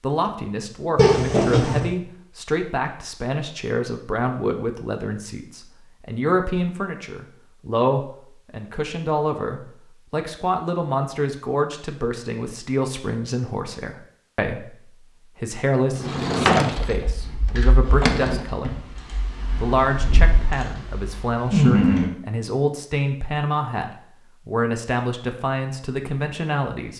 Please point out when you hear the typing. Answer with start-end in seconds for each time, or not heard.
16.9-22.1.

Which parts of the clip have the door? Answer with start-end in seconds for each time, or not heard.
0.9-1.9, 15.9-16.9, 17.9-18.4.